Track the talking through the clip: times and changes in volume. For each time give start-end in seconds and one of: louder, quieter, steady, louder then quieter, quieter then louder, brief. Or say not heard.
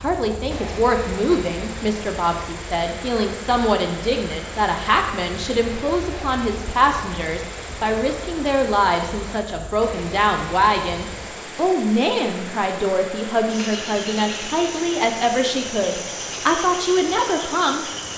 0.0-17.9 steady.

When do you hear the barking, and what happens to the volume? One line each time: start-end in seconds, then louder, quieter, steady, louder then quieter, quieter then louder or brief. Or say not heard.
not heard.